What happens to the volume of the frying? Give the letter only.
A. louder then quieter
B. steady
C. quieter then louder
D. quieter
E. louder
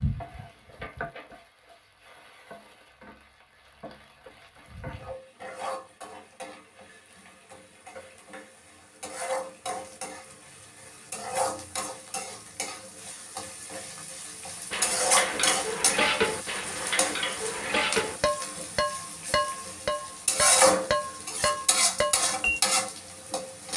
E.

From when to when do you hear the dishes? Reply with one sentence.
You can hear the dishes from 14.7 to 22.6 s.